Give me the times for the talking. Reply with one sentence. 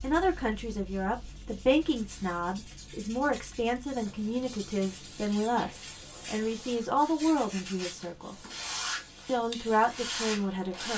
The talking can be heard from 0.0 to 8.3 s and from 9.2 to 10.9 s.